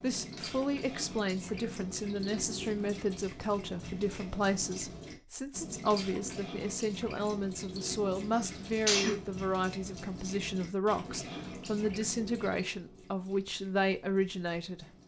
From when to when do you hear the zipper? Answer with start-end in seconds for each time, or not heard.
not heard.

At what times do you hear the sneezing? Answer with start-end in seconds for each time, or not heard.
8.3-9.2.